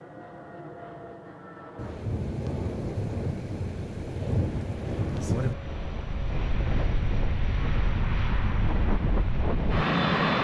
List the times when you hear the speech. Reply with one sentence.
You can't hear the speech here.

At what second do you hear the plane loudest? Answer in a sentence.
The loudest moment of the plane is at 10 seconds.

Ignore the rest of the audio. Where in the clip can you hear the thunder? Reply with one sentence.
You can hear the thunder from 1.8 to 5.5 s.